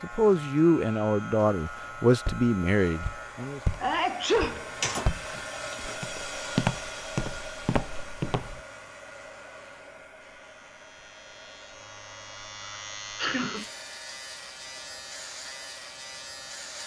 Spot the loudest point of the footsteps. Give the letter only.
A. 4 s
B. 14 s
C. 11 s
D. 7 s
D.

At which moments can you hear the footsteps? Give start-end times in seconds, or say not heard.
2.2-8.6.